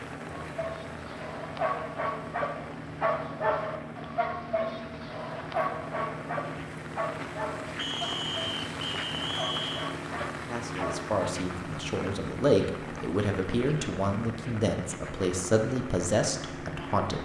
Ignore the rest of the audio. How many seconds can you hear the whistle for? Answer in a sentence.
The whistle can be heard for 2 seconds in total.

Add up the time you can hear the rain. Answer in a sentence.
The rain can be heard for 17 seconds in total.